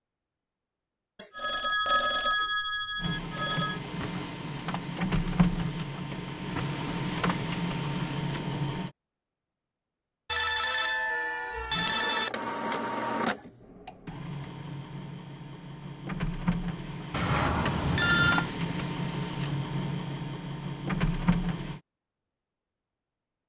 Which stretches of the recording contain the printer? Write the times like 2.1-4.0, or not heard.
3.0-8.9, 11.7-21.8.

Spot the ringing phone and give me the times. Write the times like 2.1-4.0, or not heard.
1.1-3.8, 10.2-12.3, 17.1-18.4.